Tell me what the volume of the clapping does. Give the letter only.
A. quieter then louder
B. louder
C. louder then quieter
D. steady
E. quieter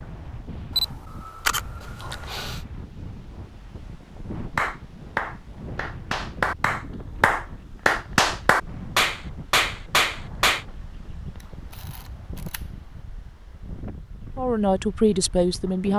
B.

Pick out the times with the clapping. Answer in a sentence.
The clapping can be heard from 4.5 to 10.7 s.